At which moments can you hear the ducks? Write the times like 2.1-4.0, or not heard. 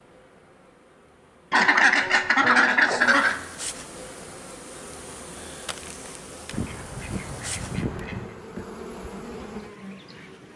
1.5-3.4, 6.5-8.3.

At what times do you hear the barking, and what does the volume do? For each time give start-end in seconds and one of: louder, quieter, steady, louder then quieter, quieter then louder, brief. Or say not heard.
not heard.